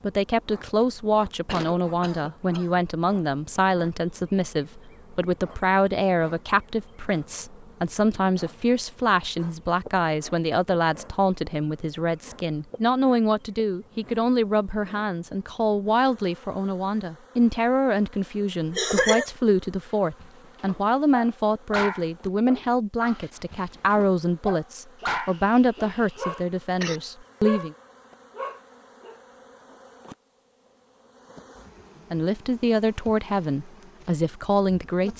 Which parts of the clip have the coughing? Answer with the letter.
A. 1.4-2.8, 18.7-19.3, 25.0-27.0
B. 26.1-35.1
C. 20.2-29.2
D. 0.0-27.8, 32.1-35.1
A.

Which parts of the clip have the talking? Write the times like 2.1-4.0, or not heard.
0.0-27.8, 32.1-35.1.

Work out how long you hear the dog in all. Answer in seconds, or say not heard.
9 s.